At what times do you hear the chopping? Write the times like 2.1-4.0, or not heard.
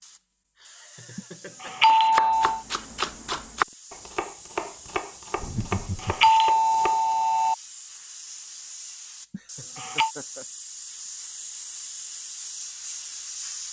1.9-7.2.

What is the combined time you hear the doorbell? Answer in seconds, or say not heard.
4 s.